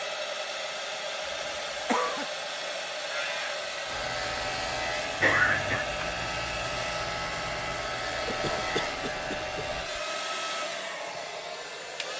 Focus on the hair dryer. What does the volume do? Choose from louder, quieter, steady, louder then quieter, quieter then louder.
steady.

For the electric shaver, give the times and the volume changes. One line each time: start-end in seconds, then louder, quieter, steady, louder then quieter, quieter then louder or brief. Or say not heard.
3.0-9.9 steady.